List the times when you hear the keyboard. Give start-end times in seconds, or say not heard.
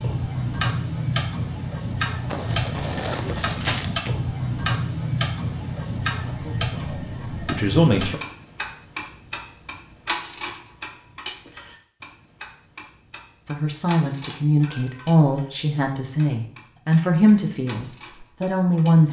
not heard.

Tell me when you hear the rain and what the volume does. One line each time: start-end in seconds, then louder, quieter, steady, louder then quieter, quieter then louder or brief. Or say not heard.
not heard.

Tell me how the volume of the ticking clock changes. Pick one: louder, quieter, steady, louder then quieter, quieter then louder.
quieter.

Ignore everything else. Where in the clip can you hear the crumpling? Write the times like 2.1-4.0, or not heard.
2.2-4.2.